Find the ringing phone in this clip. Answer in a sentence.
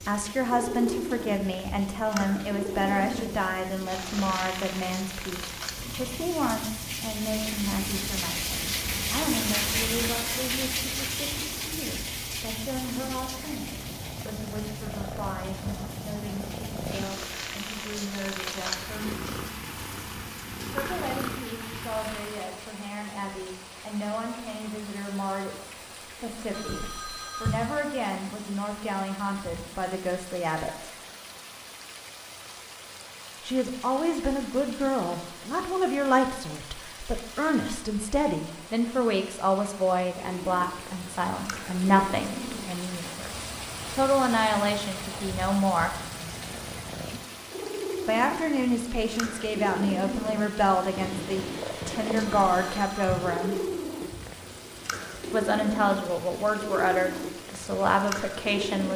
The ringing phone can be heard from 26.5 to 27.6 s and from 52.1 to 53.1 s.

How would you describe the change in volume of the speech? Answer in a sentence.
The volume of the speech goes down, then up.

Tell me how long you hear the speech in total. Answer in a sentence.
You can hear the speech for 51 seconds altogether.